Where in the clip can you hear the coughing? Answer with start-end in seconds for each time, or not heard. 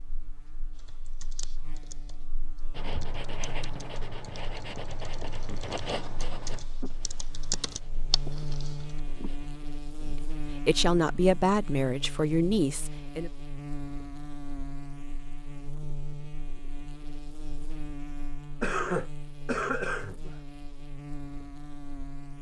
18.6-20.4.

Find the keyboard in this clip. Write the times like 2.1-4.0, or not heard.
0.8-9.0.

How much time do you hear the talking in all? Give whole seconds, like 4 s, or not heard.
3 s.